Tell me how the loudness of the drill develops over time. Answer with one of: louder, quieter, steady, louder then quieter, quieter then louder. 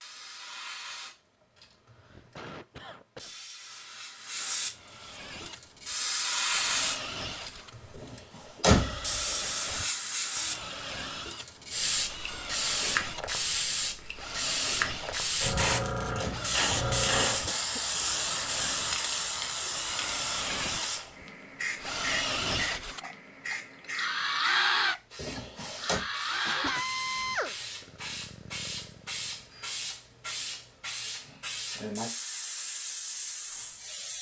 louder.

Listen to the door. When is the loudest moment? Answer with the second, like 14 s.
9 s.